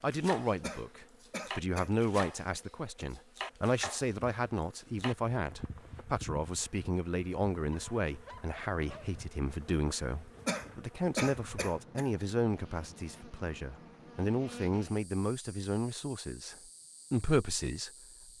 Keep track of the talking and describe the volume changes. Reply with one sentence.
The volume of the talking stays about the same.